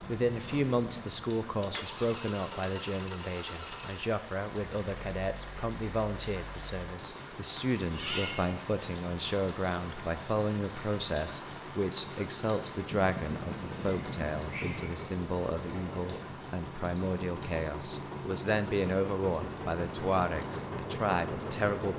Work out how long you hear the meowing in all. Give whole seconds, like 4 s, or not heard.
3 s.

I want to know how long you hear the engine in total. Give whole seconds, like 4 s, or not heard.
22 s.